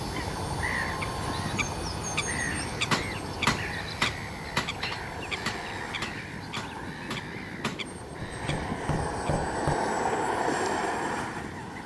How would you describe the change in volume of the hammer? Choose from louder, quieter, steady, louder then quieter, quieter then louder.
quieter.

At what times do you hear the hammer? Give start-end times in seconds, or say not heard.
2.9-9.8.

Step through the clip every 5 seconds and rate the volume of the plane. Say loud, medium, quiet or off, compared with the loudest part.
medium, medium, loud.